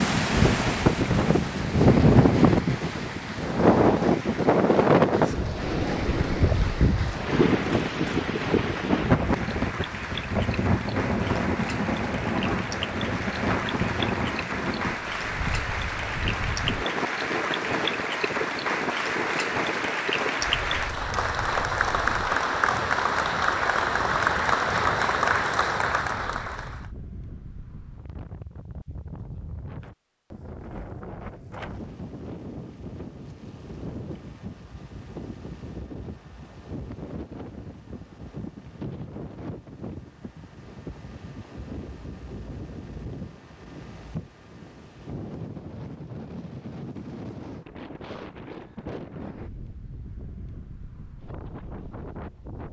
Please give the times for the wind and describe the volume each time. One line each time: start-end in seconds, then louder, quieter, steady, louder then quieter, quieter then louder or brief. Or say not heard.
0.0-52.6 quieter.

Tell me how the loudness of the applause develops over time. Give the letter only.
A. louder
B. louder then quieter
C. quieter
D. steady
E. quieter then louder
A.